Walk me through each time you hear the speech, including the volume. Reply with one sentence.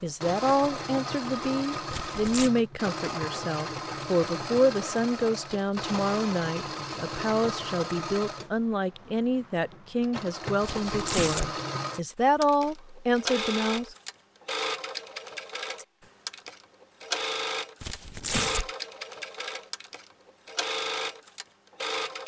The speech can be heard from 0.0 to 13.9 s, at a steady volume.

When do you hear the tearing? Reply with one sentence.
The tearing can be heard from 1.9 to 2.5 s, from 10.6 to 11.5 s and from 17.8 to 18.7 s.